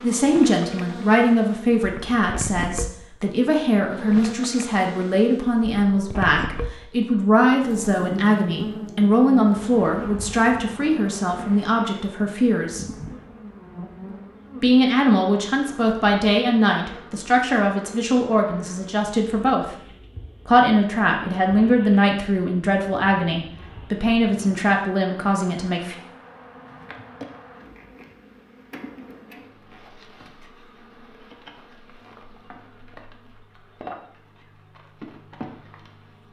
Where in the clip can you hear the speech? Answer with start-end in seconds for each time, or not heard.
0.0-12.8, 14.6-19.8, 20.4-25.9.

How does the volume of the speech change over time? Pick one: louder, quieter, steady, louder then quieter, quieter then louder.
steady.